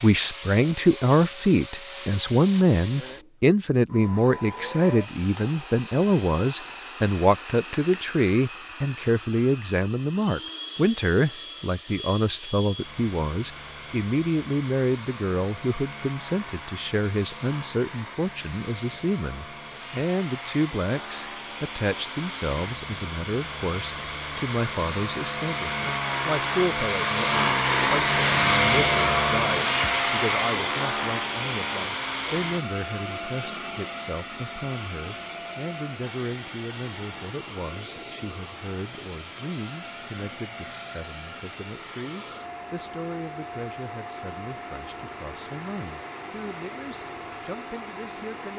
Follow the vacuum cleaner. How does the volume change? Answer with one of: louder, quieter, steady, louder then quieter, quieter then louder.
louder then quieter.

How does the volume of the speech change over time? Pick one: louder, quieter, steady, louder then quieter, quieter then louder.
quieter.